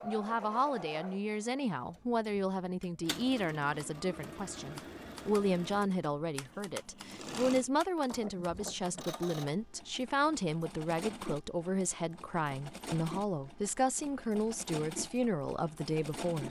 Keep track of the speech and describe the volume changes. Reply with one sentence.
The loudness of the speech stays about the same.